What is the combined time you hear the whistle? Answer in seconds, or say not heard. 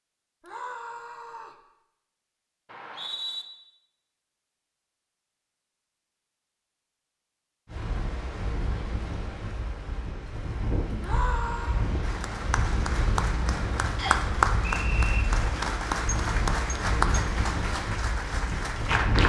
2 s.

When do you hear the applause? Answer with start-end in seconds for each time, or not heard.
12.0-19.2.